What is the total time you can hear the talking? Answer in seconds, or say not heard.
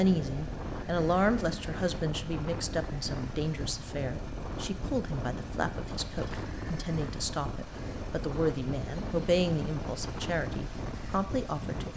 12 s.